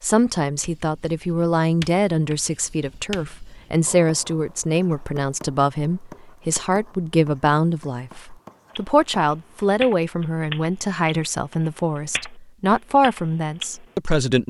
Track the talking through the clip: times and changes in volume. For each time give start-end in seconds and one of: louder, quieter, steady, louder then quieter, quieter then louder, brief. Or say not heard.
0.0-14.4 steady.